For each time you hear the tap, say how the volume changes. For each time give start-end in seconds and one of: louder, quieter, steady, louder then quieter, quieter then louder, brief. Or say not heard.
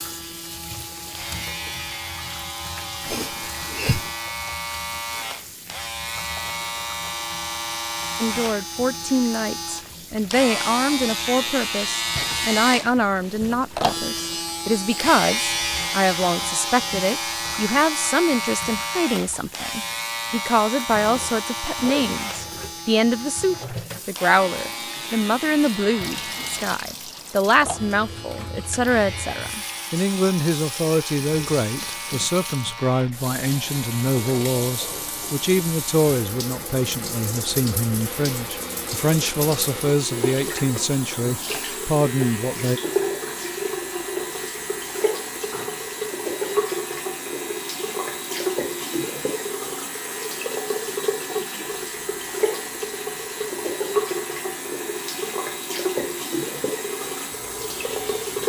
0.0-58.4 louder.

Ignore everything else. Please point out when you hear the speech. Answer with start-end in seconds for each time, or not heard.
8.2-42.8.